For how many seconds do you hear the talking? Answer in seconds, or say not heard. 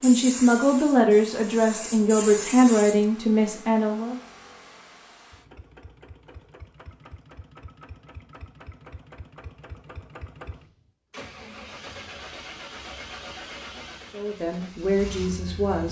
6 s.